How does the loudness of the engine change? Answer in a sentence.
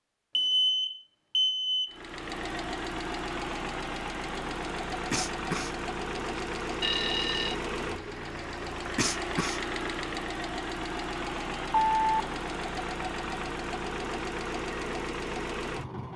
The loudness of the engine stays about the same.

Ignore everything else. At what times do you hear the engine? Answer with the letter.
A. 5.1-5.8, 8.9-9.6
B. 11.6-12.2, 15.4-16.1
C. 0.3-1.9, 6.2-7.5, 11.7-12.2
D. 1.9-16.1
D.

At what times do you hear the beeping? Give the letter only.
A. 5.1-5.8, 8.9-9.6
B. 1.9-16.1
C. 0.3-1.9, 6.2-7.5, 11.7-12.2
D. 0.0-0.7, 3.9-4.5
C.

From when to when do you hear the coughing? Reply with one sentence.
You can hear the coughing from 5.1 to 5.8 s and from 8.9 to 9.6 s.